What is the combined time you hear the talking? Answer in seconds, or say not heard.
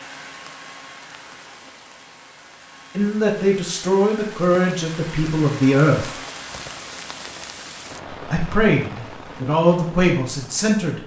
6 s.